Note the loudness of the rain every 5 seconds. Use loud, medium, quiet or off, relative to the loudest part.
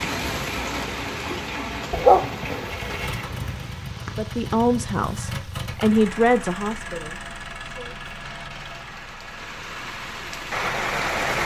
medium, quiet, loud.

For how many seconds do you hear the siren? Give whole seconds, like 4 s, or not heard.
not heard.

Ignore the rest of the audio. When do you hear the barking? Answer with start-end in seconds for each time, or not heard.
1.9-3.5.